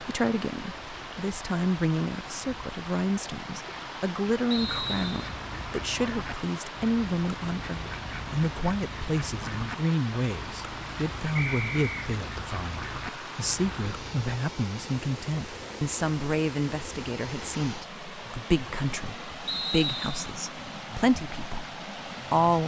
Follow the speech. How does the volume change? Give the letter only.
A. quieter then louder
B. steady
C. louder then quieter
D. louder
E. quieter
B.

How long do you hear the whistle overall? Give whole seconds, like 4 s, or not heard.
2 s.